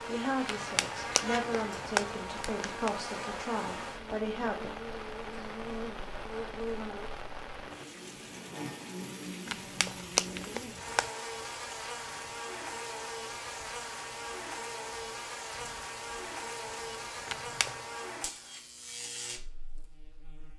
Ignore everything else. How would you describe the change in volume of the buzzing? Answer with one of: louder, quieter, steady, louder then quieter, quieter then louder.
steady.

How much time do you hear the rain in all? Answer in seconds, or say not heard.
17 s.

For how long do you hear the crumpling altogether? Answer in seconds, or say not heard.
5 s.